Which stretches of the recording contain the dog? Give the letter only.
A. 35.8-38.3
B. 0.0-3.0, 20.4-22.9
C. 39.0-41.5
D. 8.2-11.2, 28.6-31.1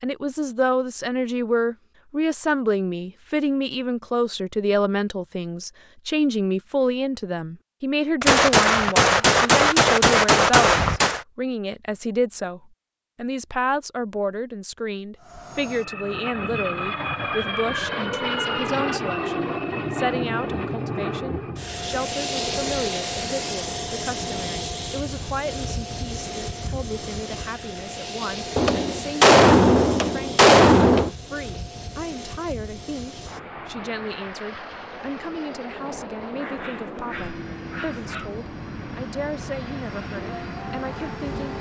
A.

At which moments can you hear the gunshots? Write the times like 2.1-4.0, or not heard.
8.2-11.2, 28.6-31.1.